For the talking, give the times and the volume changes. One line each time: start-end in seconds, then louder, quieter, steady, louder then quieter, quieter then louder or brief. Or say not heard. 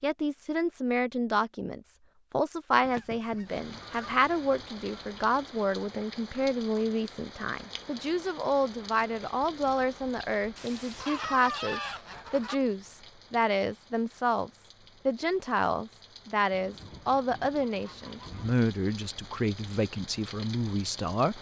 0.0-21.3 steady.